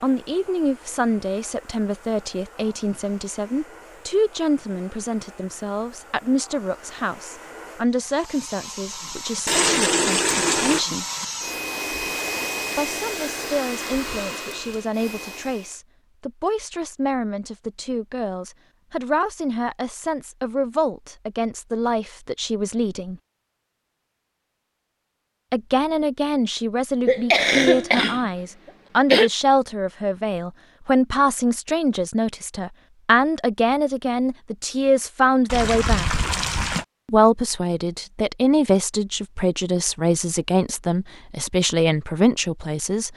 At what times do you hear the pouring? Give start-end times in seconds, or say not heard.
9.4-10.8, 35.5-36.9.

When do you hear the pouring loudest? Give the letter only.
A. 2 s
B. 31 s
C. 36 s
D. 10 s
D.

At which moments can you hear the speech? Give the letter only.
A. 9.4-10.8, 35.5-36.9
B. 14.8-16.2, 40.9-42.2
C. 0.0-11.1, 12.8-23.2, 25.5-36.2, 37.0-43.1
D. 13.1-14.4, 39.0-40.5
C.